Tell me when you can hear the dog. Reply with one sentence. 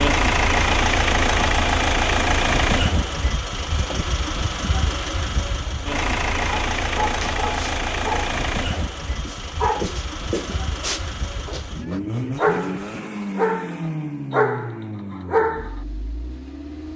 You can hear the dog from 6.4 to 15.8 s.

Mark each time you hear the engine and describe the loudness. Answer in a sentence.
You can hear the engine from 0.0 to 16.9 s, getting quieter.